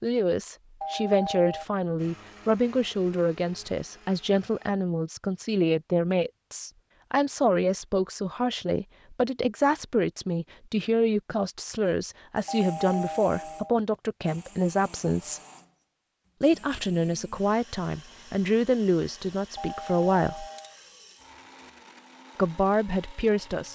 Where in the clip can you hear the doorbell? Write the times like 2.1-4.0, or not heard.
0.8-1.6, 12.4-13.8, 19.6-20.8.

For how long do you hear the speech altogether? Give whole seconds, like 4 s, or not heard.
21 s.